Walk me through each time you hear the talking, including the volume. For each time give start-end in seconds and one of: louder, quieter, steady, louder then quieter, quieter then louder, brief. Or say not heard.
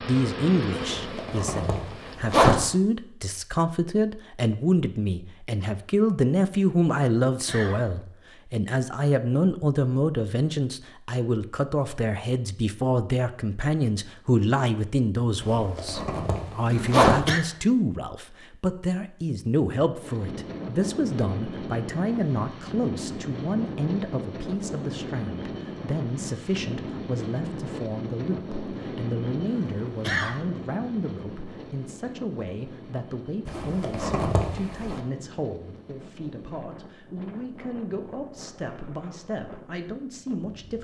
0.1-40.7 quieter.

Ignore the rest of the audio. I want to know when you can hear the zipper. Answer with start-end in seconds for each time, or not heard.
0.8-2.6, 15.4-17.2, 33.5-35.0.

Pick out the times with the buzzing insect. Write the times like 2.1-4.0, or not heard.
0.0-2.1.